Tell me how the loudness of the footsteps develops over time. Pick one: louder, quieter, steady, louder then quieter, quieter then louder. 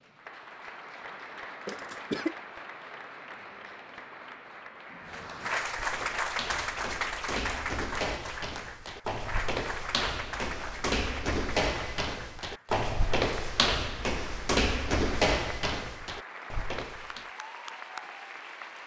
louder.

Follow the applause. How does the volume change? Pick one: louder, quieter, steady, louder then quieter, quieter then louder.
louder then quieter.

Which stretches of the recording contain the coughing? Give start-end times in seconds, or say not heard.
1.6-2.4.